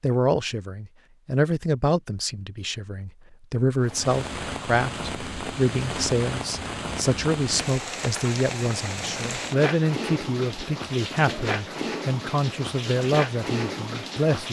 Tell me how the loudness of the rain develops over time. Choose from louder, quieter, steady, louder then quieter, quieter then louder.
steady.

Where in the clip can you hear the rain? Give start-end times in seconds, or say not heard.
3.8-14.4.